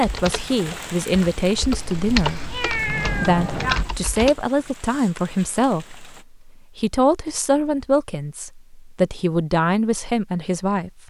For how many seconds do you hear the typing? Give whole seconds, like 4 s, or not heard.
4 s.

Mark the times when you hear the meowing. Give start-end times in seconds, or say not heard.
2.2-3.9.